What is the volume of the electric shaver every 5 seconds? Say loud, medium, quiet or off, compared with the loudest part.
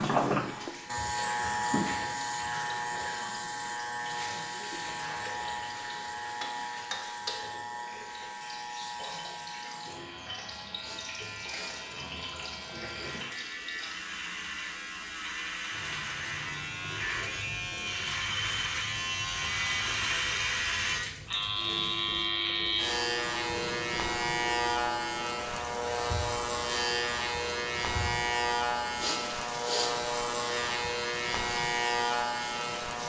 loud, medium, medium, loud, loud, loud, loud.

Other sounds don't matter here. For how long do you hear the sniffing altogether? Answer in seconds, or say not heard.
2 s.